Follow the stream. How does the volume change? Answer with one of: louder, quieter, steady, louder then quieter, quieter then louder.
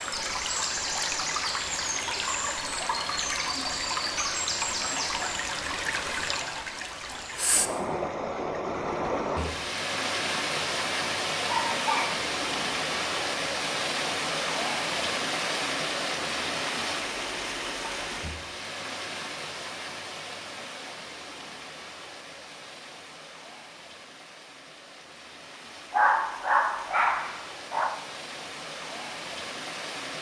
quieter.